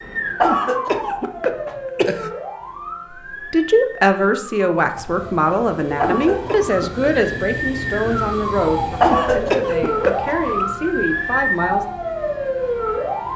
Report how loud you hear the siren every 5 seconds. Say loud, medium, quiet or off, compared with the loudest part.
medium, loud, loud.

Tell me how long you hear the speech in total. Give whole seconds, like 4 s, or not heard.
8 s.